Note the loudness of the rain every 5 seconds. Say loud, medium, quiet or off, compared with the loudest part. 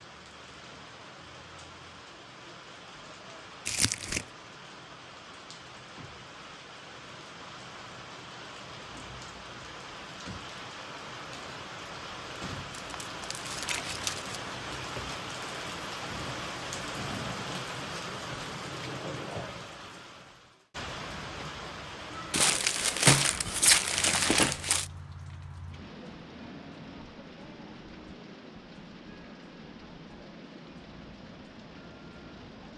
medium, medium, loud, loud, medium, medium, medium.